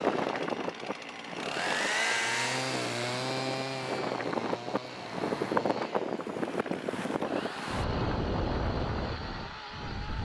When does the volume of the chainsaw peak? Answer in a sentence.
The loudest moment of the chainsaw is at 2 seconds.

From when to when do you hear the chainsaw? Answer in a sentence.
You can hear the chainsaw from 0.0 to 10.2 s.